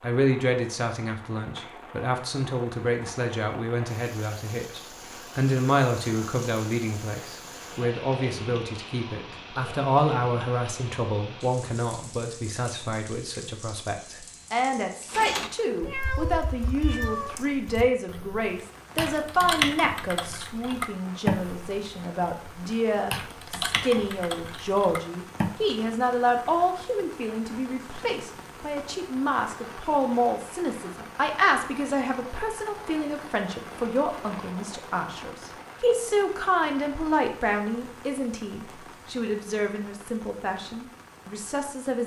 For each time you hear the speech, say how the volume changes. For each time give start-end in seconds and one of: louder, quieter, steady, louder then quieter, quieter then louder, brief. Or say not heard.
0.0-42.0 steady.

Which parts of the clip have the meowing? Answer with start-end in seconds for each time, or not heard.
15.8-17.4.